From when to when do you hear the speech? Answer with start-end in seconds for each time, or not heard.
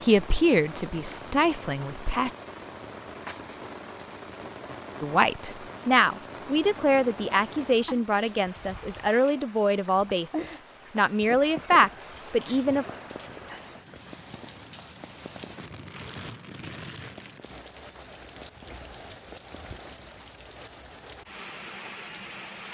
0.0-2.3, 5.0-12.8.